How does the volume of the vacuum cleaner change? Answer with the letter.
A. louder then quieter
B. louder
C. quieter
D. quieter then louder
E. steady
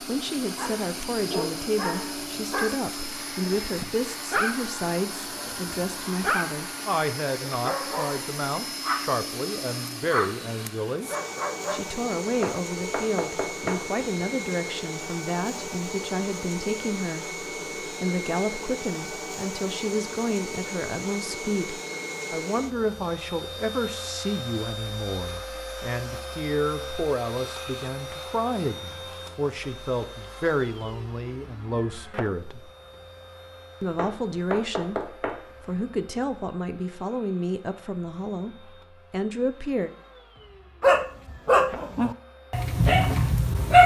C.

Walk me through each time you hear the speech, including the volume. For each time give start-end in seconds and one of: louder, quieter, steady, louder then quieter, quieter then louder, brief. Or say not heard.
0.0-11.1 steady
11.7-32.7 steady
33.8-39.9 steady.